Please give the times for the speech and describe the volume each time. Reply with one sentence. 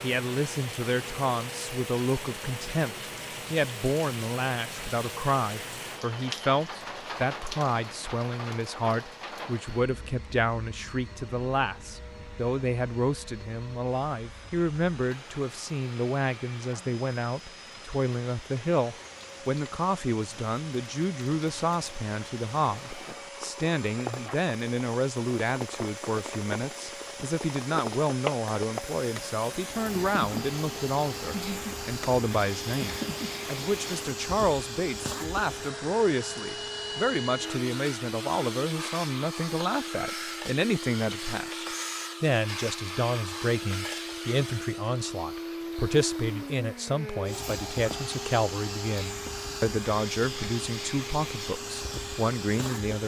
You can hear the speech from 0.0 to 53.0 s, at a steady volume.